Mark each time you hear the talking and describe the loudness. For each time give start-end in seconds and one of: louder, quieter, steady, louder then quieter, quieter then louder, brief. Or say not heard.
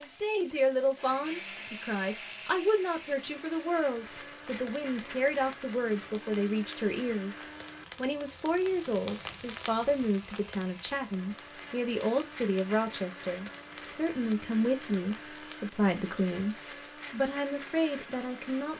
0.0-18.7 steady.